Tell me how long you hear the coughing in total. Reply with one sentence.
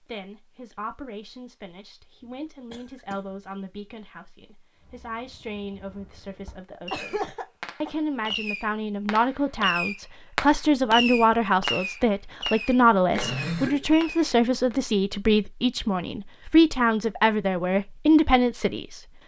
The coughing can be heard for 2 seconds in total.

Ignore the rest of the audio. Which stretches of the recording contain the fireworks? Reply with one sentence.
You can hear the fireworks from 4.8 to 14.8 s.